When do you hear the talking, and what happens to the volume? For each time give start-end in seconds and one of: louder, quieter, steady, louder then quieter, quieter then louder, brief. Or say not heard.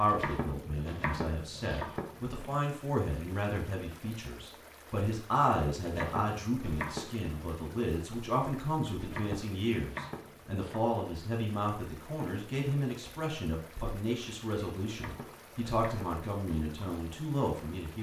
0.0-17.9 steady.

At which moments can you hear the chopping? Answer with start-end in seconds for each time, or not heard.
0.1-2.5, 5.8-7.3, 9.0-10.9, 14.8-16.2.